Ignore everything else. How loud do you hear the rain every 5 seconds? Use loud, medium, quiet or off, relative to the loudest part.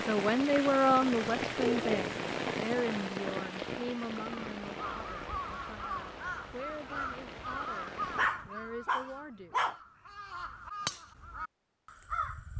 loud, medium, off.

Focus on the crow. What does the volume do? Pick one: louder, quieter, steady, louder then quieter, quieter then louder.
quieter then louder.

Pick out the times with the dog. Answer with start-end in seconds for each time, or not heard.
1.1-2.2, 8.2-9.8.